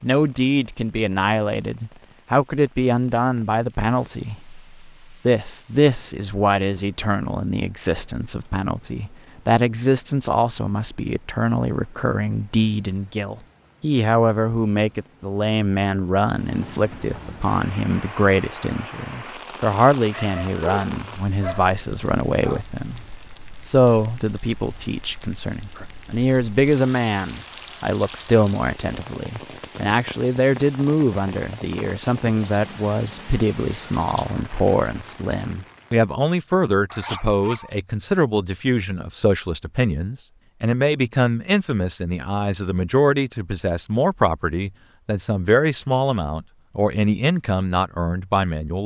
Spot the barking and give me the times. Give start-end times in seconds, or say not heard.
20.1-22.6, 36.9-37.7.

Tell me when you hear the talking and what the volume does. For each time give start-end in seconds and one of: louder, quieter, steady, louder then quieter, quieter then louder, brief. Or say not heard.
0.0-48.8 steady.